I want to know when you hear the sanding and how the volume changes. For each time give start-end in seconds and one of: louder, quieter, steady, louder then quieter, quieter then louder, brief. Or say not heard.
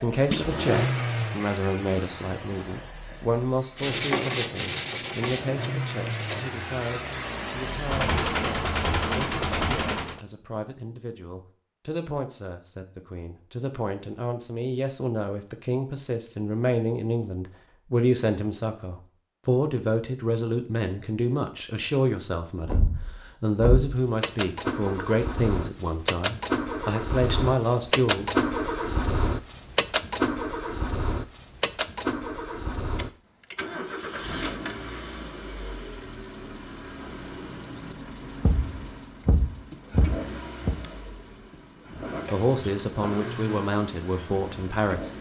3.8-9.7 quieter.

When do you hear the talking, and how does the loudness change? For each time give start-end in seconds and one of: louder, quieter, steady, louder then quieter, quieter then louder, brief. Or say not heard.
0.0-28.2 quieter then louder
42.3-45.1 brief.